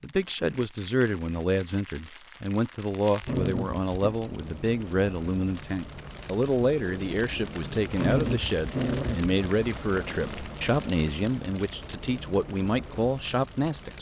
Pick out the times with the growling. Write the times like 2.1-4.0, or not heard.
3.2-4.2, 7.9-9.3.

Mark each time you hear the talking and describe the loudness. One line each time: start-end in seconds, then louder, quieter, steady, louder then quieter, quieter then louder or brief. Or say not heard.
0.0-13.9 steady.